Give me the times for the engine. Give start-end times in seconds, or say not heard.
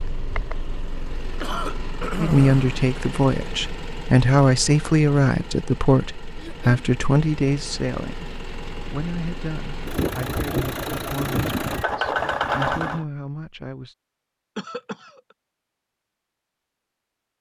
0.0-13.1.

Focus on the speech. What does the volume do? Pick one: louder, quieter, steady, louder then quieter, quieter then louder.
quieter.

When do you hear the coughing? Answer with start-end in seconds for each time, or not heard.
1.4-2.7, 6.3-6.8, 14.6-15.3.